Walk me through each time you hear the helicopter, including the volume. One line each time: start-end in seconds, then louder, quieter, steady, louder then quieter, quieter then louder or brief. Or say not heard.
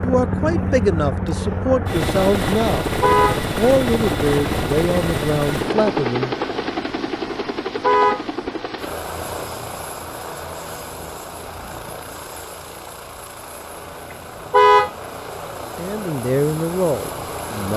0.0-17.7 quieter.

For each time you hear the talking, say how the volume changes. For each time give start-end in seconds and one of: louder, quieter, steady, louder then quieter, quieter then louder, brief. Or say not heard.
0.0-6.3 steady
15.8-17.7 brief.